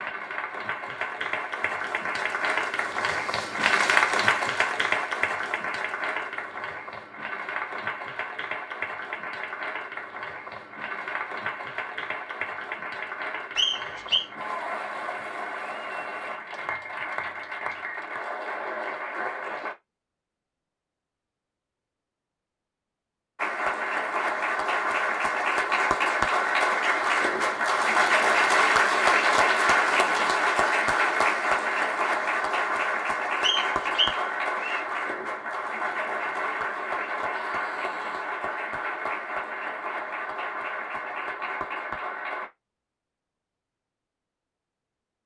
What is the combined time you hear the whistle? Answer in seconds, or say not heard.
2 s.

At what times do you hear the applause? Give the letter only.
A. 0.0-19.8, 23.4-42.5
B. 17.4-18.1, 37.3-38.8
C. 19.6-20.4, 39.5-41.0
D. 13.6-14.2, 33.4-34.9
A.